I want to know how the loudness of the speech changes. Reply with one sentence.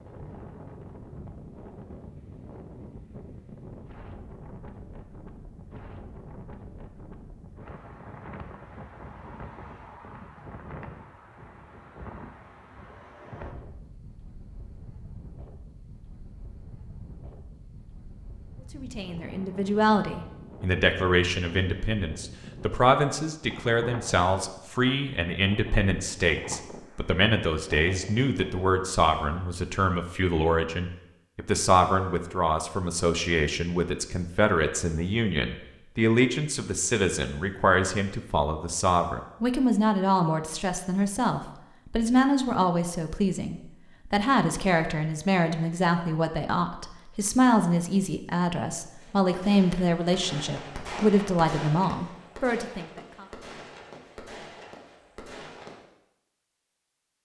The loudness of the speech stays about the same.